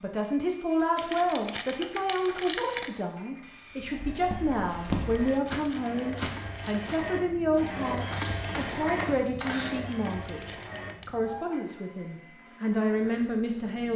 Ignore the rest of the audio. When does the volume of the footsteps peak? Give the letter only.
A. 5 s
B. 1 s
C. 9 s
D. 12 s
A.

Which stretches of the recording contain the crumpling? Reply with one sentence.
You can hear the crumpling from 0.9 to 2.9 s, from 5.1 to 7.0 s and from 9.9 to 11.1 s.